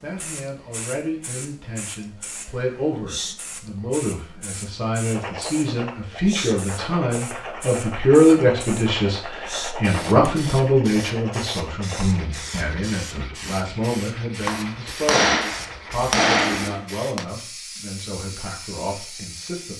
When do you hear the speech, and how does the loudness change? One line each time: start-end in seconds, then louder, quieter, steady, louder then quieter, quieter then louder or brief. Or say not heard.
0.0-19.7 louder then quieter.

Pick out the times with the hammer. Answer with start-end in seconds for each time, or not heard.
14.4-17.2.